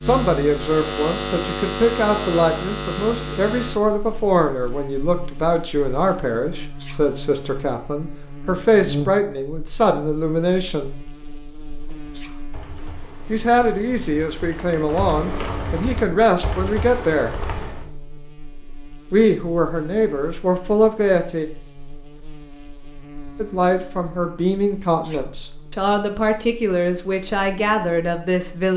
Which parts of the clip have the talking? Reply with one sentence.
The talking can be heard from 0.0 to 10.9 s, from 13.2 to 17.4 s, from 19.1 to 21.4 s and from 23.4 to 28.7 s.